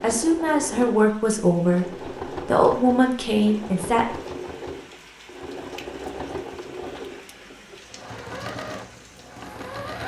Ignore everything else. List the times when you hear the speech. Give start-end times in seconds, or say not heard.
0.0-1.9, 2.5-4.2.